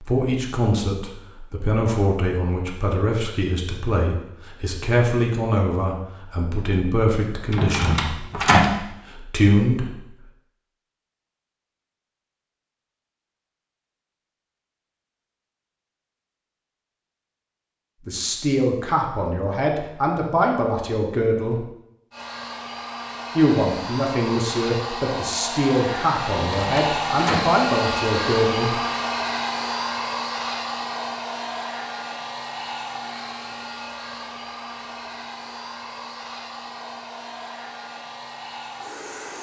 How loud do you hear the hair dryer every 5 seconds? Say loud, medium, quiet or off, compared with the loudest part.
off, off, off, off, medium, loud, medium, medium.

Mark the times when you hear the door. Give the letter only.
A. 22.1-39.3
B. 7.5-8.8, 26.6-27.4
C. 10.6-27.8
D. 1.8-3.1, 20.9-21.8
B.